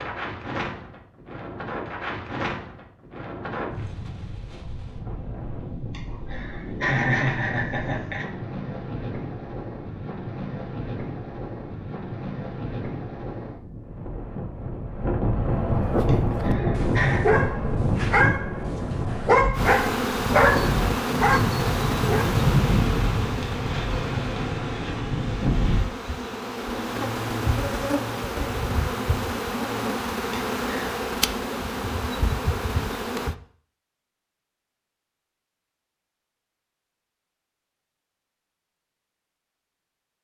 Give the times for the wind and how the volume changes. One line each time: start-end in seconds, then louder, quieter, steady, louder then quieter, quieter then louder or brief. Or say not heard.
0.0-25.9 louder.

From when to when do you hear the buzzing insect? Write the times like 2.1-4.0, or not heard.
19.5-33.4.